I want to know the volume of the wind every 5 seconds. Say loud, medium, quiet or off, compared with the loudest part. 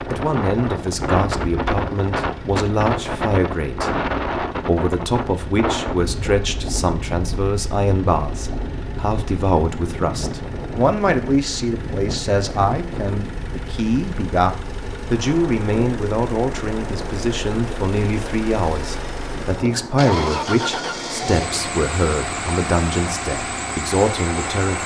loud, medium, medium, medium, medium.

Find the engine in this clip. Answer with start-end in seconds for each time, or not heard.
0.0-24.8.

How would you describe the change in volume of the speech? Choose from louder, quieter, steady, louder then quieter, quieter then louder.
steady.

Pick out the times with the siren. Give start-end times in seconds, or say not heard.
not heard.